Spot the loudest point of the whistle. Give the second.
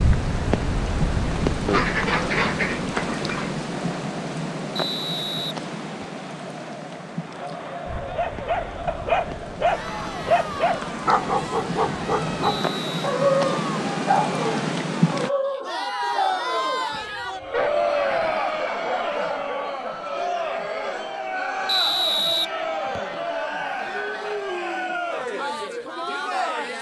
22 s.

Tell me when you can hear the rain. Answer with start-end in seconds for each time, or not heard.
0.0-15.3.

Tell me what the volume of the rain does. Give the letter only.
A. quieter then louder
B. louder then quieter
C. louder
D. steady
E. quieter
A.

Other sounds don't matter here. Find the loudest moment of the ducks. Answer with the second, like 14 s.
2 s.